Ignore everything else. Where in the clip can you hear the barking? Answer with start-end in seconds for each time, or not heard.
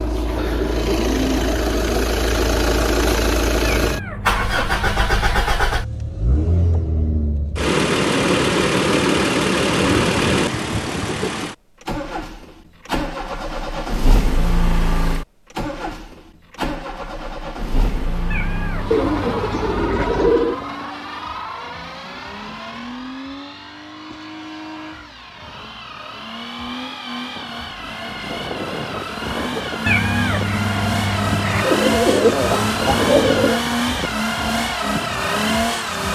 not heard.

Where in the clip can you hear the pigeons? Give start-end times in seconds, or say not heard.
0.3-2.0, 9.8-11.3, 18.9-20.6, 31.6-33.6.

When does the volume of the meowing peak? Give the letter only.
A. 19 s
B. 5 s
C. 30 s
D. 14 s
C.